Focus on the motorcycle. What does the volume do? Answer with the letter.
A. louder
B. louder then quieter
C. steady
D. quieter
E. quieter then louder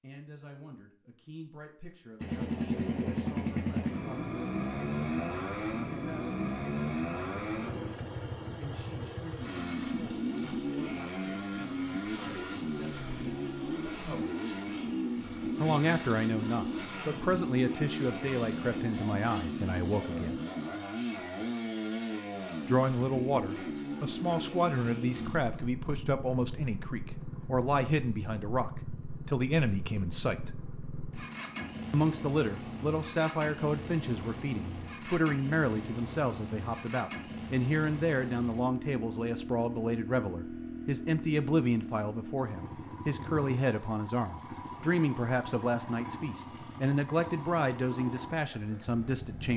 D.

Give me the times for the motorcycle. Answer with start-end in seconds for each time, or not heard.
2.2-49.5.